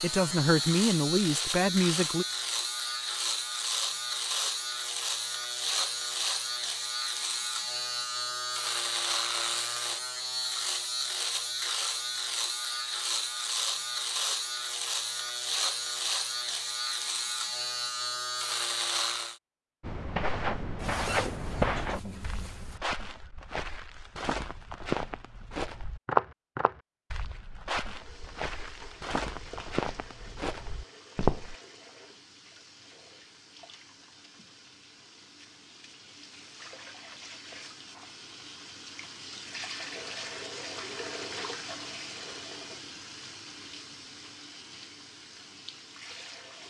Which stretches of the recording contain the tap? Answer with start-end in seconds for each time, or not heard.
27.9-46.6.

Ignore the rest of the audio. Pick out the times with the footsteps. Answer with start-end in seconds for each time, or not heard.
19.8-31.6.